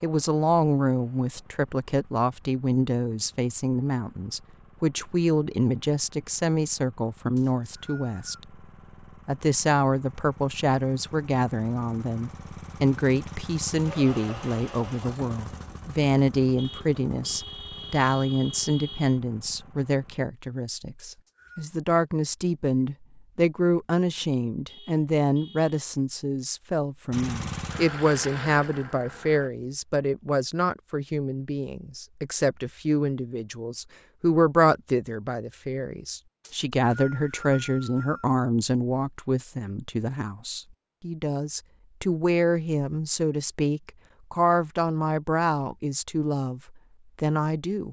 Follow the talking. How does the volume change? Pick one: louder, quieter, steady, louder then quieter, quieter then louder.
steady.